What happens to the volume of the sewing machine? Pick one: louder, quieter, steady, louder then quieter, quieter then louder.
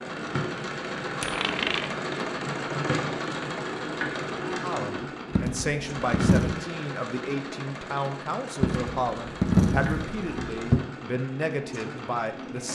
quieter.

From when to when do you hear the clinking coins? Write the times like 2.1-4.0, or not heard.
1.2-1.9, 5.3-6.6, 8.6-10.8.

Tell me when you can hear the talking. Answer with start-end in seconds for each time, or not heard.
4.6-12.7.